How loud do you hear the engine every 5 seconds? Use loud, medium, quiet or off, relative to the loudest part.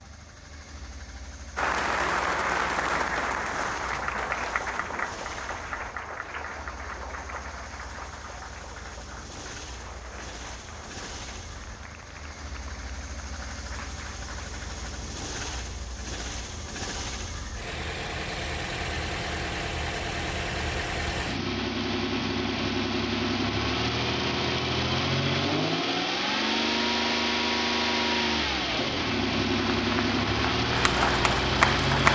quiet, quiet, quiet, medium, loud, loud, loud.